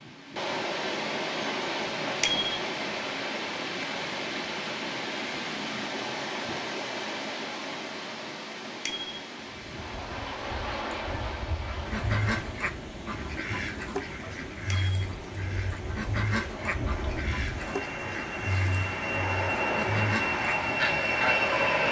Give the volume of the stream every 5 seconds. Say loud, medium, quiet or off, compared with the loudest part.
loud, loud, medium, medium, medium.